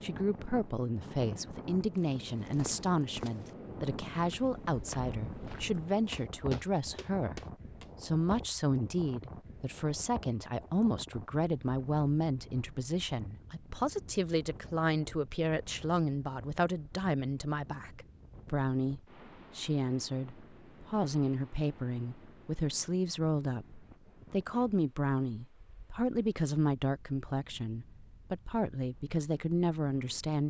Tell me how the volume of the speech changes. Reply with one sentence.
The loudness of the speech stays about the same.